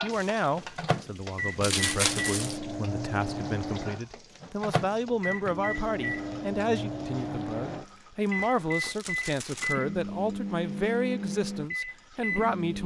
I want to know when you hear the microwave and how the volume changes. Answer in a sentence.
You can hear the microwave from 0.0 to 12.8 s, at a steady volume.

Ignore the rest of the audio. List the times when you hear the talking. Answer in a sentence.
The talking can be heard from 0.0 to 12.8 s.